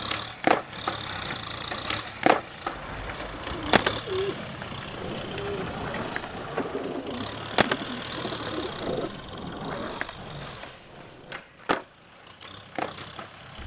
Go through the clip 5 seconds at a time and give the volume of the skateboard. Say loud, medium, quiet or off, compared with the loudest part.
loud, medium, medium.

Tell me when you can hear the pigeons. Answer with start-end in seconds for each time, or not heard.
2.6-9.1.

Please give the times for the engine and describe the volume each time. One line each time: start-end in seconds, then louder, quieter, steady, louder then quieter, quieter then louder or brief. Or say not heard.
0.0-13.6 quieter.